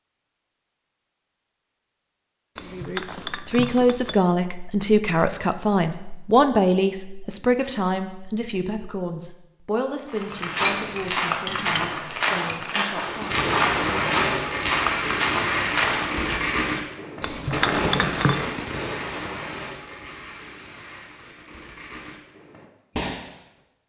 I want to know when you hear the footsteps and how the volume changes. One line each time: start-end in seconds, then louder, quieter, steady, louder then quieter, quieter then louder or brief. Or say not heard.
10.1-16.4 steady.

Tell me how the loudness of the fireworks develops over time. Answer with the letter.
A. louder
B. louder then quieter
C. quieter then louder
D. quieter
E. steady
D.